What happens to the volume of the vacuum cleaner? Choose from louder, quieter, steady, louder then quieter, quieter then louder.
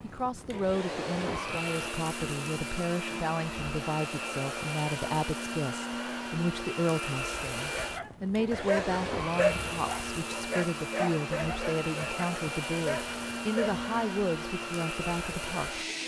steady.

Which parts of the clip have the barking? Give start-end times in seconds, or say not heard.
7.7-13.9.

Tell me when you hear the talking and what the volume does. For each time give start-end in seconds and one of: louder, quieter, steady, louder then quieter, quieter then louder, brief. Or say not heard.
0.0-15.8 steady.